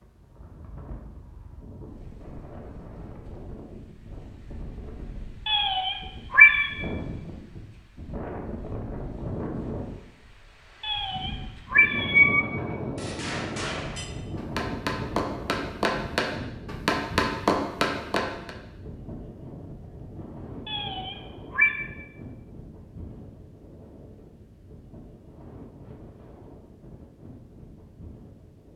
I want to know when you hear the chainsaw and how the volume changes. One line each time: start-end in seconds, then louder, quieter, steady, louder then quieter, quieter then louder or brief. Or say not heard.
not heard.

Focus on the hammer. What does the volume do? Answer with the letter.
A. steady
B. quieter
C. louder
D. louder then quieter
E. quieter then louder
C.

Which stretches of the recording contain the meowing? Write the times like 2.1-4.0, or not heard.
5.5-6.7, 10.8-12.4, 20.6-21.8.